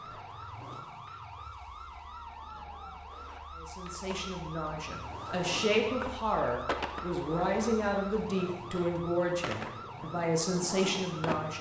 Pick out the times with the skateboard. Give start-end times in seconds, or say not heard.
0.0-11.5.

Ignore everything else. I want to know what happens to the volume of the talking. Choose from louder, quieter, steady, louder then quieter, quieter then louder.
louder.